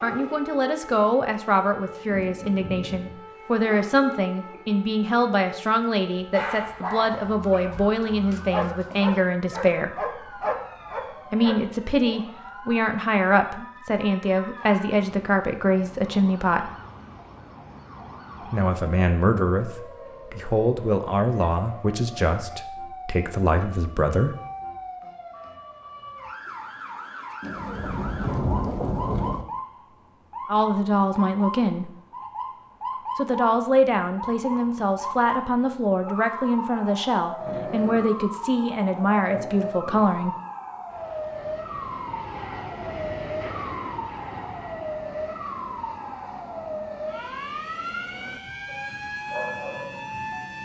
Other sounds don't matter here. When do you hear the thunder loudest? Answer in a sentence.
The loudest moment of the thunder is at 28 seconds.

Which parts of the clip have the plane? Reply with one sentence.
The plane can be heard from 40.9 to 50.6 s.